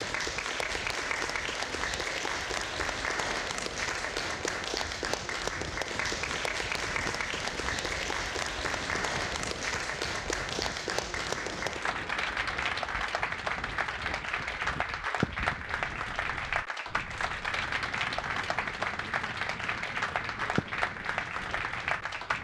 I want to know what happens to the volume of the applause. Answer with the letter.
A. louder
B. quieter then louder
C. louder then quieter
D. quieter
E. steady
E.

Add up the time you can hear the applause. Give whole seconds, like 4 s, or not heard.
22 s.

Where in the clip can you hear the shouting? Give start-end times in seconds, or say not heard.
not heard.